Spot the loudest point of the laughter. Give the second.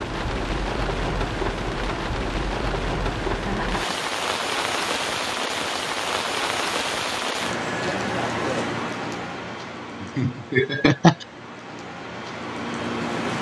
11 s.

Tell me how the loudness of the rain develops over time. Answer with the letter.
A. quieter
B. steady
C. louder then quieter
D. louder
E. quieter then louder
A.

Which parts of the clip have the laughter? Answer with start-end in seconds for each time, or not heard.
3.4-4.0, 10.0-11.2.